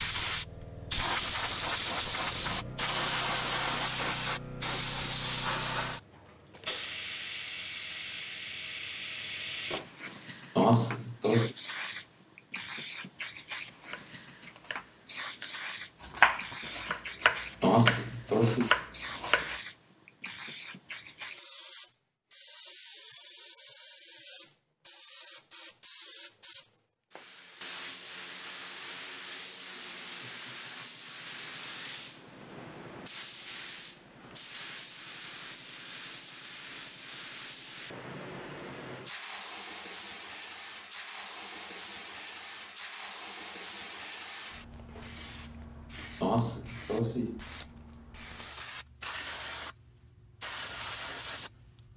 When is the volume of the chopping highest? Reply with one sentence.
The volume of the chopping peaks at 16 seconds.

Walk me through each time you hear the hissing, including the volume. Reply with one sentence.
You can hear the hissing from 0.0 to 51.9 s, getting quieter.